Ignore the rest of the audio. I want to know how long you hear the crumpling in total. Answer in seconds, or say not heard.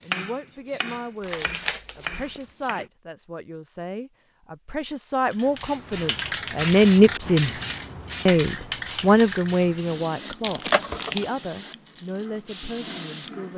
2 s.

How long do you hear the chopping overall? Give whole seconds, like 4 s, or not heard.
3 s.